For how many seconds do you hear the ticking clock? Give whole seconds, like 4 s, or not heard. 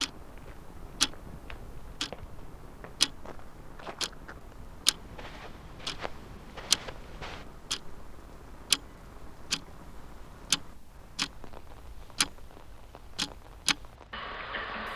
15 s.